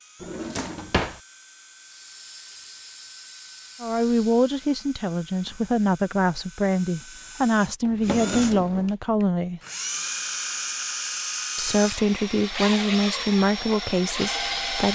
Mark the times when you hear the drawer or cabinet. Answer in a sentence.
You can hear the drawer or cabinet from 0.2 to 1.2 s and from 7.8 to 8.9 s.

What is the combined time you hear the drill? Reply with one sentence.
The drill can be heard for 15 seconds in total.